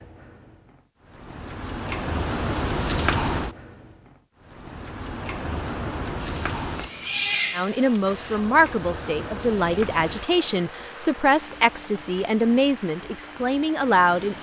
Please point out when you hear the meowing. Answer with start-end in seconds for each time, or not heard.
6.8-7.8.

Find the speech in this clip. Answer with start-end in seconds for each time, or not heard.
7.5-14.3.